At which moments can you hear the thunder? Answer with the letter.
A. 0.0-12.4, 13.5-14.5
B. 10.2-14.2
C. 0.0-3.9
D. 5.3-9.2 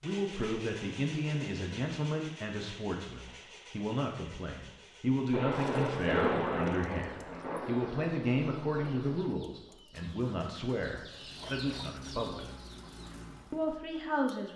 D.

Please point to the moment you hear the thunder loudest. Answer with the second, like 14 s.
6 s.